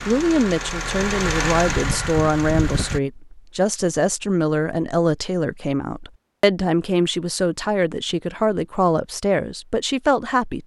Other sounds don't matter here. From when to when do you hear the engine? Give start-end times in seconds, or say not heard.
0.0-3.0.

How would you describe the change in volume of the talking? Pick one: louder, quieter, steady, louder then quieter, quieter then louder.
steady.